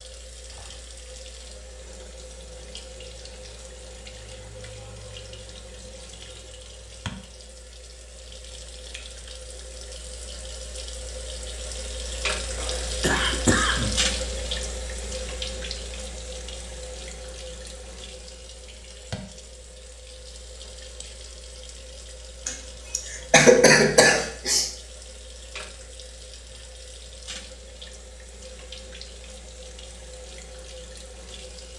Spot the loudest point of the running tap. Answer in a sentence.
The loudest moment of the running tap is at 14 seconds.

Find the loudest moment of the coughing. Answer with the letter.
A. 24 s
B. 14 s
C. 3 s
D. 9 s
A.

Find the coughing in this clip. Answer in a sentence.
You can hear the coughing from 12.6 to 13.9 s and from 22.4 to 24.7 s.